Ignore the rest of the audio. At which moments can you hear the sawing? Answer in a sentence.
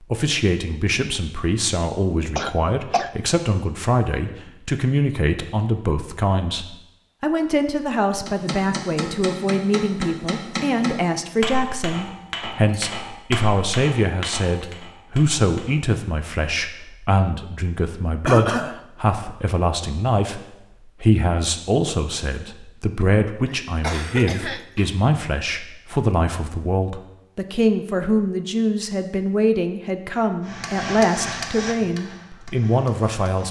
You can't hear the sawing here.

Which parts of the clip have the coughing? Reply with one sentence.
You can hear the coughing from 2.4 to 3.1 s, from 18.2 to 18.8 s and from 23.5 to 24.9 s.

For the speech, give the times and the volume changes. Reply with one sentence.
You can hear the speech from 0.0 to 33.4 s, at a steady volume.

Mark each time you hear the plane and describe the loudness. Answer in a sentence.
The plane can't be heard in this clip.